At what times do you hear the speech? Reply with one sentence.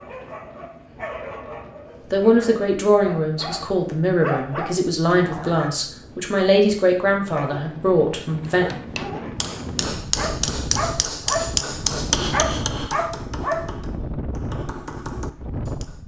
The speech can be heard from 2.1 to 8.7 s.